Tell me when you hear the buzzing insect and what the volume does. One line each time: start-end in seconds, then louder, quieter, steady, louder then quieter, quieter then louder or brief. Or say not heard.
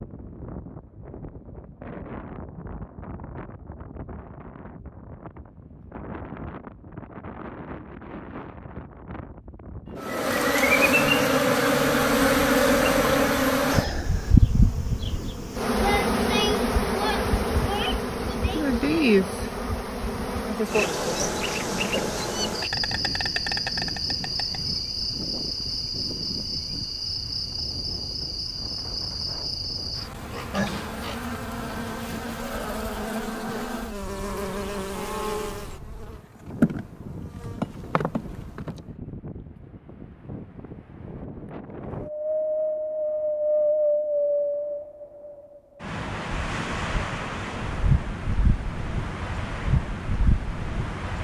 10.0-38.9 quieter.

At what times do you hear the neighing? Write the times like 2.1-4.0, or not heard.
not heard.